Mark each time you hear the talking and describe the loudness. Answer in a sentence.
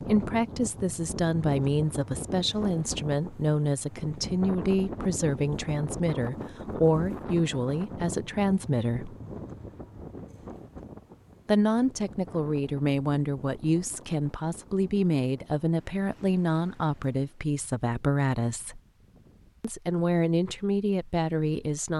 The talking can be heard from 0.0 to 9.2 s, at a steady volume; from 11.4 to 18.8 s, at a steady volume; and briefly from 19.6 to 21.9 s.